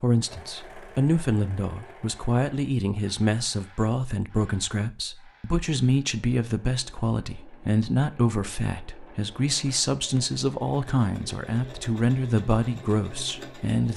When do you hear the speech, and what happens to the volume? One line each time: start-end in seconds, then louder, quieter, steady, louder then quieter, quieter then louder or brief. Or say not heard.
0.0-13.9 steady.